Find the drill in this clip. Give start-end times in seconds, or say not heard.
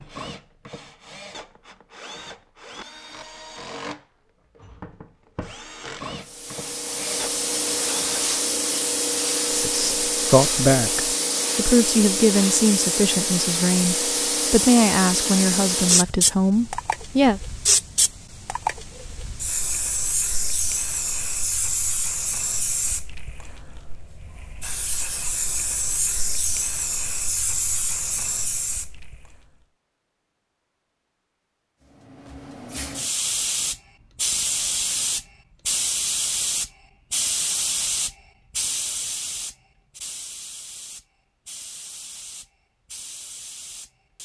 0.0-8.3.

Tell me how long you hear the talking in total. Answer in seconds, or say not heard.
8 s.